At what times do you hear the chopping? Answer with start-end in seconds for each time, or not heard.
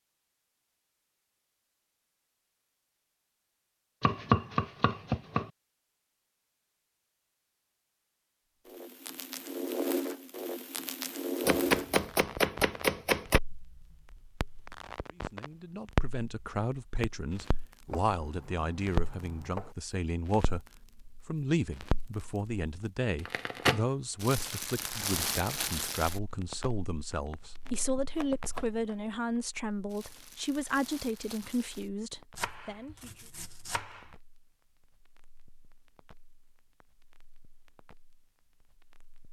4.0-5.5, 11.4-13.4, 17.9-19.8, 27.6-28.9, 32.4-34.1.